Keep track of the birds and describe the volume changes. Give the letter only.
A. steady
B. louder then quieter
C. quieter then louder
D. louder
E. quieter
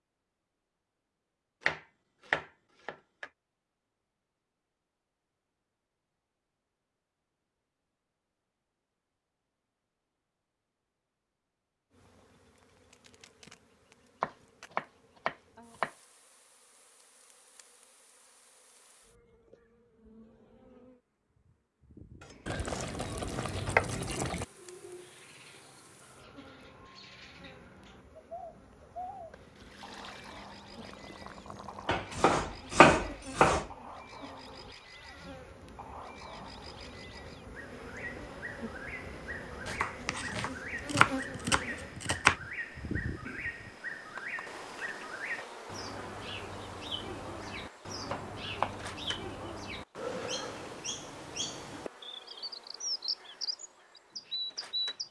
D.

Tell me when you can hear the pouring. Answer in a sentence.
You can hear the pouring from 22.4 to 24.4 s and from 29.3 to 32.0 s.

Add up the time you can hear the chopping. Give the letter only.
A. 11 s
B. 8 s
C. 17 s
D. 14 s
A.